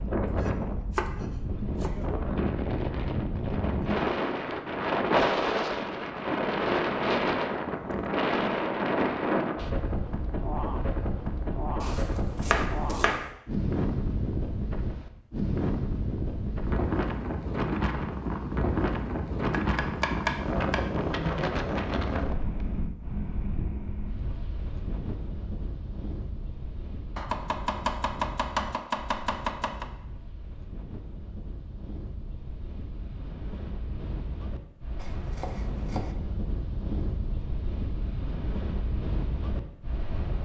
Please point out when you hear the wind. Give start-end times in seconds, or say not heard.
0.0-40.3.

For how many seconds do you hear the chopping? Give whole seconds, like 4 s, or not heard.
8 s.